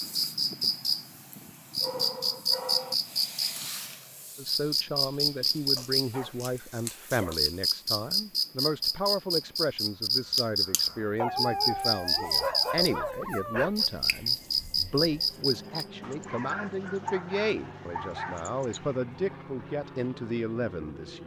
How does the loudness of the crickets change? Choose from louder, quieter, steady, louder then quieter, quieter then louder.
steady.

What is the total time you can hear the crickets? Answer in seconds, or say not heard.
16 s.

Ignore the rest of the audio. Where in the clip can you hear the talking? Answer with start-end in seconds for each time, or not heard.
4.3-21.2.